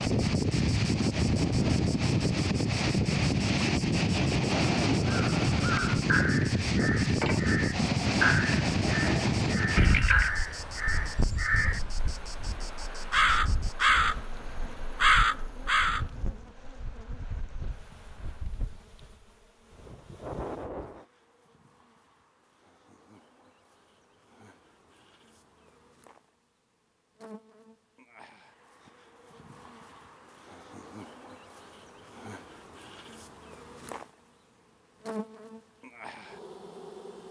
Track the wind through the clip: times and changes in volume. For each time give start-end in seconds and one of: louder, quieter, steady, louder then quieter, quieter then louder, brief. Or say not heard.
0.0-21.1 quieter.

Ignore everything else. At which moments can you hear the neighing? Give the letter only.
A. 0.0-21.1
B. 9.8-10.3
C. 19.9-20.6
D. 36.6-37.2
B.